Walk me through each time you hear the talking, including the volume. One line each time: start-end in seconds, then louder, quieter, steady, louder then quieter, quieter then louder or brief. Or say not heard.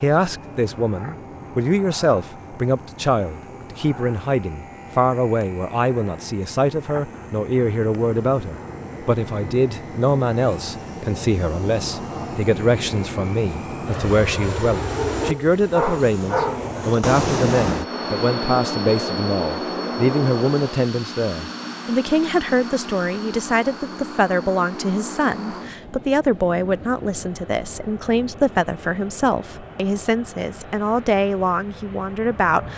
0.0-32.7 steady.